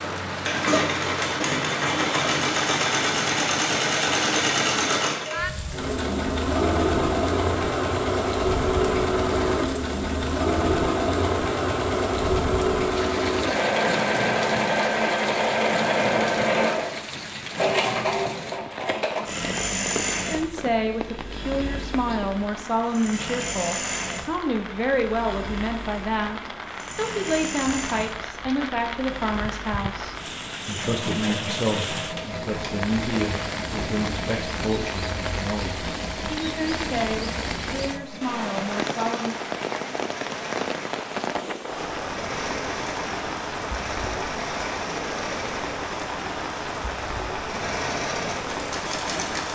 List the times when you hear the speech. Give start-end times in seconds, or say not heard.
20.3-39.4.